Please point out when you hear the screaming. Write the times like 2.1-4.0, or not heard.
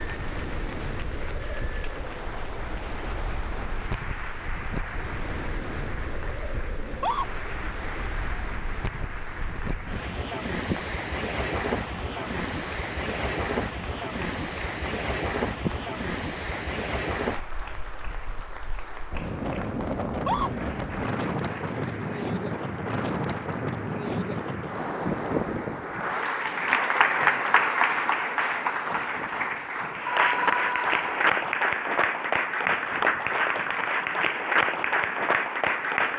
6.8-7.2, 20.1-20.5, 30.1-31.3.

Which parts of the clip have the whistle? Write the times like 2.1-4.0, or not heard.
not heard.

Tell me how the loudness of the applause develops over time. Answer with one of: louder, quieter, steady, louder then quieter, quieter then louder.
louder.